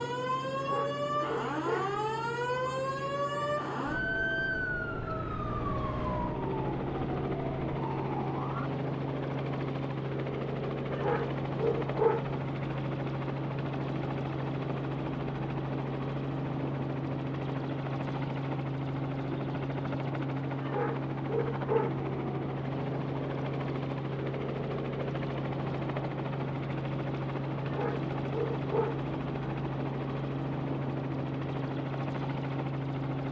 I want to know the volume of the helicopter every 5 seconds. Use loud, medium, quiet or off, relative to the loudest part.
medium, loud, loud, loud, loud, loud, loud.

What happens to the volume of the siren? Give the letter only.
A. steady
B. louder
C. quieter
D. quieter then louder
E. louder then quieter
C.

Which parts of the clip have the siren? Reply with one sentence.
You can hear the siren from 0.0 to 8.7 s.